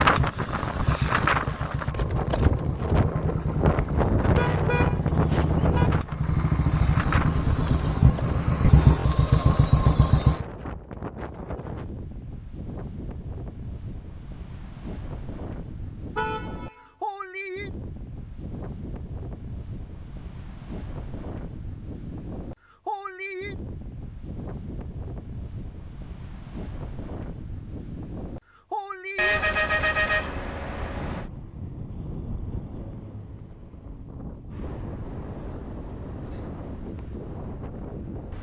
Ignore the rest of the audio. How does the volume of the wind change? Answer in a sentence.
The loudness of the wind goes down.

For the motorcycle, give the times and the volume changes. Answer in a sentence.
The motorcycle can be heard from 0.0 to 10.4 s, getting louder.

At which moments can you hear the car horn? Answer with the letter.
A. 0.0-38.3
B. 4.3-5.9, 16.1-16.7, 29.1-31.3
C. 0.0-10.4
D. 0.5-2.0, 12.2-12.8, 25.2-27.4
B.